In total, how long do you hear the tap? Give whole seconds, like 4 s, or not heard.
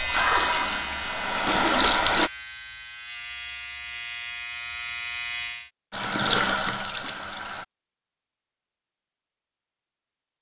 4 s.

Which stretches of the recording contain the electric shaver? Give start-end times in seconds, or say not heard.
0.0-5.7.